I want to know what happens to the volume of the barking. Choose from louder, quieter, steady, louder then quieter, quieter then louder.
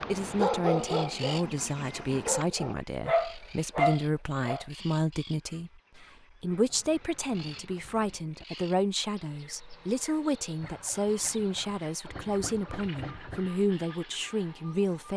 quieter then louder.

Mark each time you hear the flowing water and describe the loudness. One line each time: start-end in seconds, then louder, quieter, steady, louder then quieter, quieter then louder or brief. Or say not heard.
not heard.